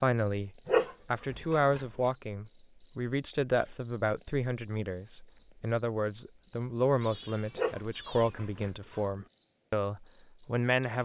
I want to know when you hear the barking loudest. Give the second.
1 s.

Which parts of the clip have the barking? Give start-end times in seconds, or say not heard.
0.7-1.9, 7.5-9.1.